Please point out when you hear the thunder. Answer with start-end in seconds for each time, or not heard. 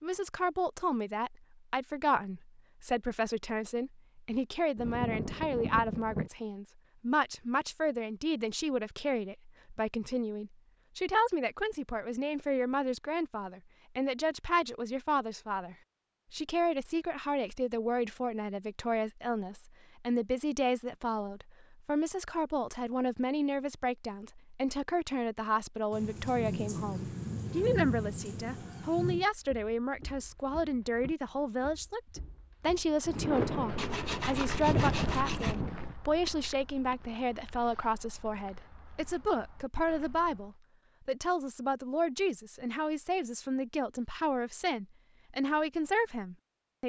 4.8-6.3, 25.9-29.2, 33.0-36.0.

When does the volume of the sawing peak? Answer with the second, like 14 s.
35 s.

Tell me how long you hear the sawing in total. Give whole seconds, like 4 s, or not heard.
2 s.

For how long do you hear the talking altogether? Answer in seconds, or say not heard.
47 s.